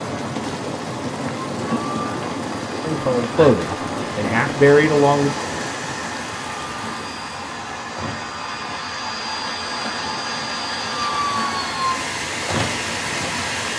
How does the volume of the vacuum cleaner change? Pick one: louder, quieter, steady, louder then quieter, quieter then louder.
louder.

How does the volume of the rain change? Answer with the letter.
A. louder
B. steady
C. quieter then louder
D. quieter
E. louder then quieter
C.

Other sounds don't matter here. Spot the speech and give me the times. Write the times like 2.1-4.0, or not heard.
2.8-5.3.